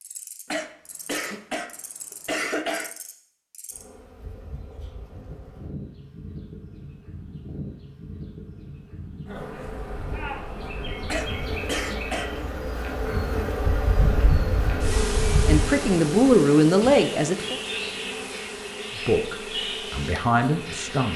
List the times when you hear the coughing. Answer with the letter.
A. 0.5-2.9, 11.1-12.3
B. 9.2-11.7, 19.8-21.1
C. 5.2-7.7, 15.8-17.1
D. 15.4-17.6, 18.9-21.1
A.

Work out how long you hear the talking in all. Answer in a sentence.
The talking can be heard for 4 seconds in total.